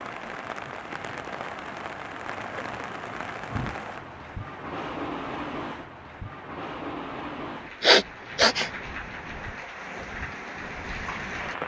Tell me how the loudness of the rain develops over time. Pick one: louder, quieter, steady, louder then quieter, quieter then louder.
steady.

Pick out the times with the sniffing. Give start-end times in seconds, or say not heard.
7.8-8.7.